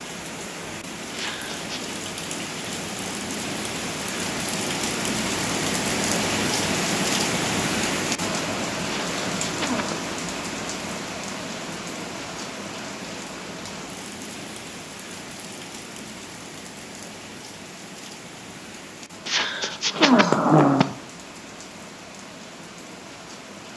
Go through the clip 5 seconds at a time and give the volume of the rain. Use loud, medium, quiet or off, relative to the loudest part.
medium, loud, medium, quiet, quiet.